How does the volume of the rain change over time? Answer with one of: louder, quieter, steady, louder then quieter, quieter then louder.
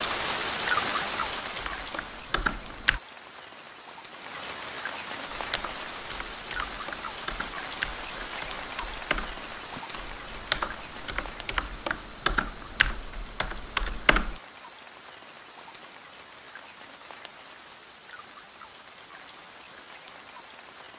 quieter.